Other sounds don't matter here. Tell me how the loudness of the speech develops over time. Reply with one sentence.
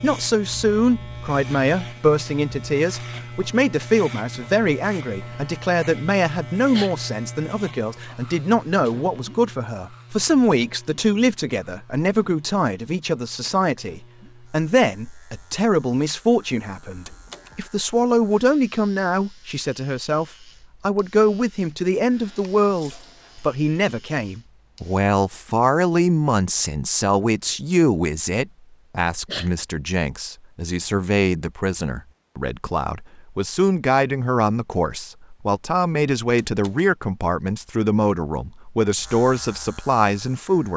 The volume of the speech stays about the same.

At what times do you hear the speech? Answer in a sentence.
You can hear the speech from 0.0 to 40.7 s.